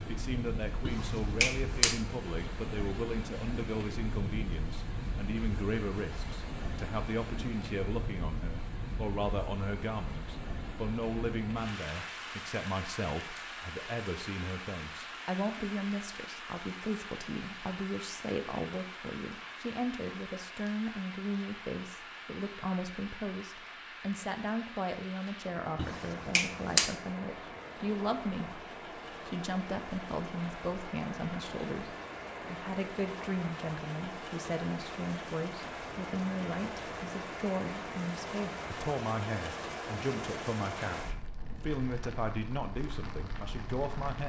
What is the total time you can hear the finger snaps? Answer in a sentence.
You can hear the finger snaps for 2 seconds altogether.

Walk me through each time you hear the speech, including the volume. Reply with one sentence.
You can hear the speech from 0.1 to 44.2 s, at a steady volume.